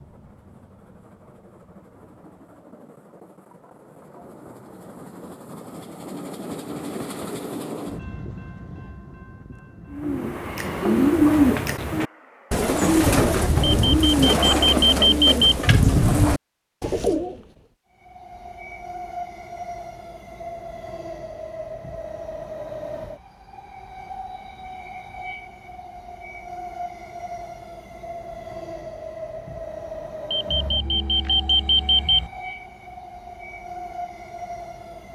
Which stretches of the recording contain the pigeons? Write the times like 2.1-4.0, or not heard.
9.9-17.6.